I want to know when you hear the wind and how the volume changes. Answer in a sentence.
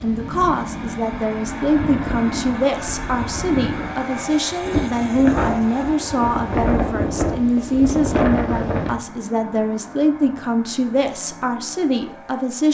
You can hear the wind from 0.0 to 9.0 s, getting louder.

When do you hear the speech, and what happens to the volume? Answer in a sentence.
You can hear the speech from 0.0 to 12.6 s, at a steady volume.